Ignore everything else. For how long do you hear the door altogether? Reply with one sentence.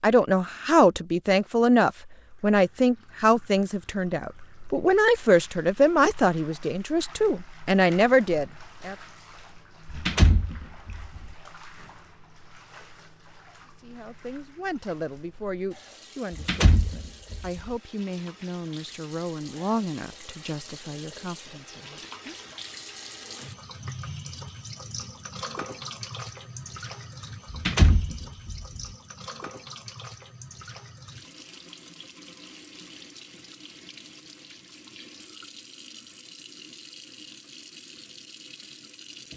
The door can be heard for 4 seconds in total.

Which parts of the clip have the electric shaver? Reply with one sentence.
You can't hear the electric shaver here.